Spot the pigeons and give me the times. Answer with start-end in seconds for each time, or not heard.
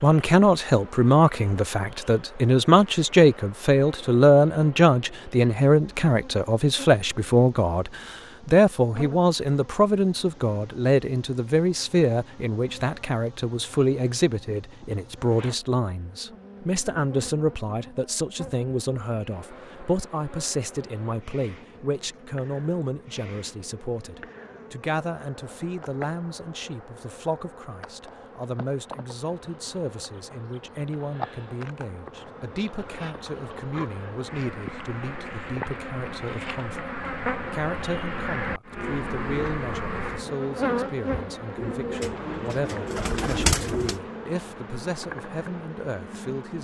41.5-44.0.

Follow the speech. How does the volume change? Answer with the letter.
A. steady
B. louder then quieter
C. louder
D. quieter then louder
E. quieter
E.